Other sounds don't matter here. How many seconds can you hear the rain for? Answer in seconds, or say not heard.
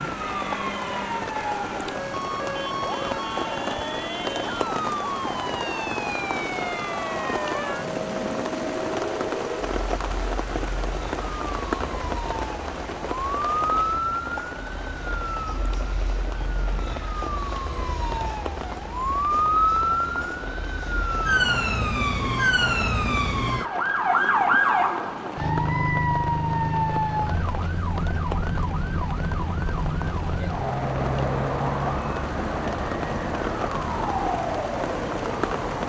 36 s.